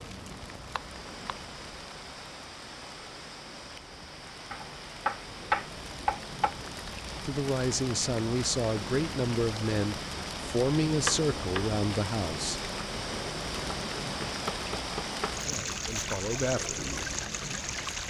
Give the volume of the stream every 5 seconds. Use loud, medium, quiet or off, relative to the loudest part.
medium, medium, loud, loud.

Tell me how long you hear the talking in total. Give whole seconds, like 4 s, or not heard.
7 s.